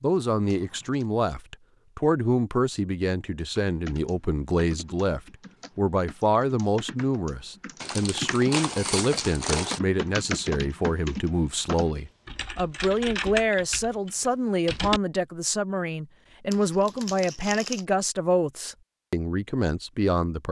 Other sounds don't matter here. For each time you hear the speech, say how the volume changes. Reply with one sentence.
You can hear the speech from 0.0 to 20.4 s, at a steady volume.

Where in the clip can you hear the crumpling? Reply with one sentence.
The crumpling can be heard from 0.5 to 1.1 s, from 7.8 to 9.8 s and from 16.5 to 17.9 s.